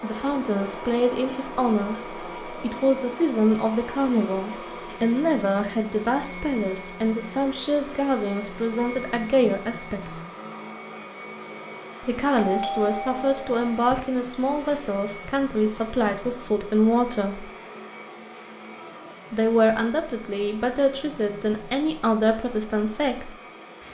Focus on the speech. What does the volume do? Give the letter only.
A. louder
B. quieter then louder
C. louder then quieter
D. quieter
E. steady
E.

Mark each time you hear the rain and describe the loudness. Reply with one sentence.
The rain can't be heard in this clip.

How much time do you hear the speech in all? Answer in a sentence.
The speech can be heard for 20 seconds in total.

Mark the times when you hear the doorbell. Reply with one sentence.
The doorbell can be heard from 12.3 to 14.0 s.